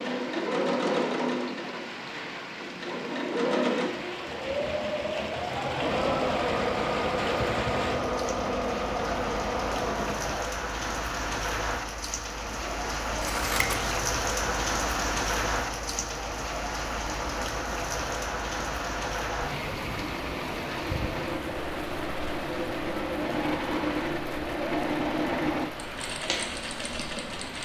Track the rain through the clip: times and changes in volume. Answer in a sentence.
The rain can be heard from 0.0 to 27.5 s, getting louder then quieter.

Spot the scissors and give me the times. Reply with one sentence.
You can hear the scissors from 13.2 to 14.1 s.